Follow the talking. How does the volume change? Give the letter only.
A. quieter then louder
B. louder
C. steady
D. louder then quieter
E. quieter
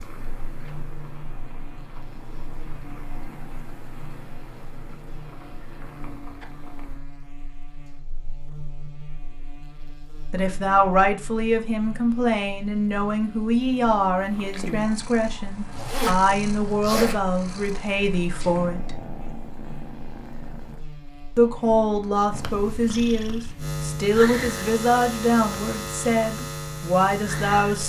C.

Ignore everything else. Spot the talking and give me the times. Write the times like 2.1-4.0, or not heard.
10.3-19.1, 21.4-27.8.